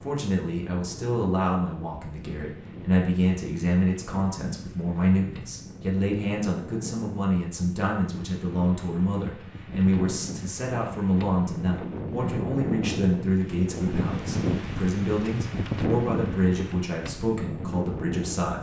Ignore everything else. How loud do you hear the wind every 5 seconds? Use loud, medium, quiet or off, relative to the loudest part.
medium, medium, loud, loud.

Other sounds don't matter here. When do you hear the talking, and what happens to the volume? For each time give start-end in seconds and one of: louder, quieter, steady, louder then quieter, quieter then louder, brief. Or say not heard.
0.0-18.5 steady.